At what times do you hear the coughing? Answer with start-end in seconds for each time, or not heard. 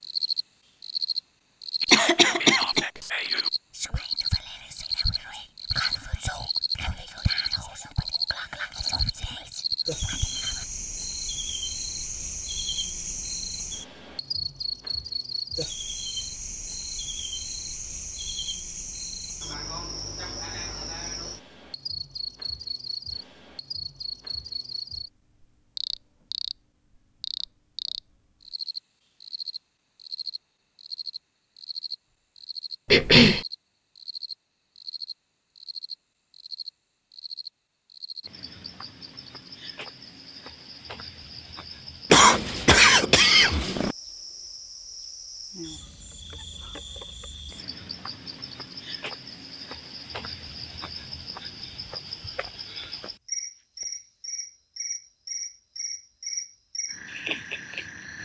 1.9-2.9, 32.9-33.5, 42.1-44.0.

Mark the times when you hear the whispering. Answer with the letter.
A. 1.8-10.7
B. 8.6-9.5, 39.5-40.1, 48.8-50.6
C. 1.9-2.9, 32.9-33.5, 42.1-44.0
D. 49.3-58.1
A.